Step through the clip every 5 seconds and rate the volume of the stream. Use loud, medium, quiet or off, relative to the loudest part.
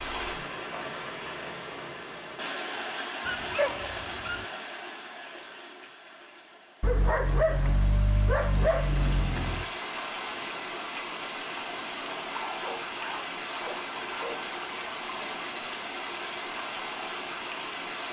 loud, medium, loud, loud.